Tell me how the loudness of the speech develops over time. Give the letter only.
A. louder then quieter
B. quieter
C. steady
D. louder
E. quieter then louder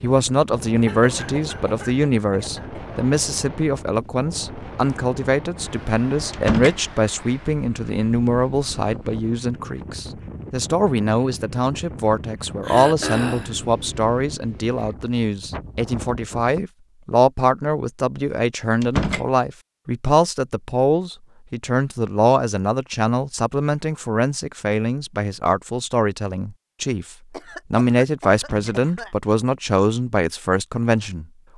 C.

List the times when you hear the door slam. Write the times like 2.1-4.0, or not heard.
6.3-6.8, 18.8-19.2, 28.4-28.8.